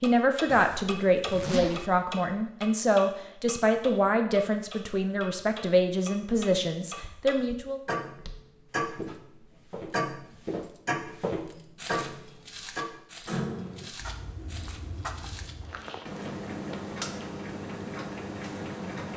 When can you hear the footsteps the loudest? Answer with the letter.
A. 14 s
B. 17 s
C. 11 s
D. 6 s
C.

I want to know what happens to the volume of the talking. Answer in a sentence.
The volume of the talking stays about the same.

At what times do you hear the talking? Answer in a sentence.
The talking can be heard from 0.0 to 7.8 s.